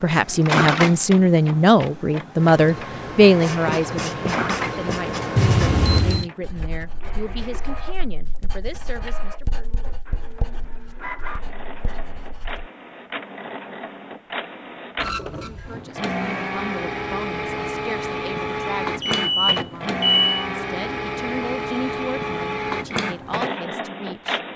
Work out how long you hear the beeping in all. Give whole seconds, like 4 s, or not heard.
2 s.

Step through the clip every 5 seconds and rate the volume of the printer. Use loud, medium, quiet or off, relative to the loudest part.
loud, quiet, medium, loud, loud.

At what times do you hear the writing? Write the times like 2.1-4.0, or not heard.
2.4-12.7.